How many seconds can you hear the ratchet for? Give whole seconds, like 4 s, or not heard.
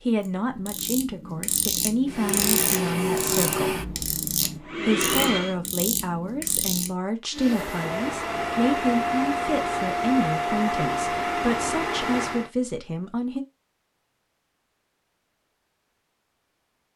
7 s.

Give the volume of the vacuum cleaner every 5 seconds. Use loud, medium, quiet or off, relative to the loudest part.
loud, loud, loud, off.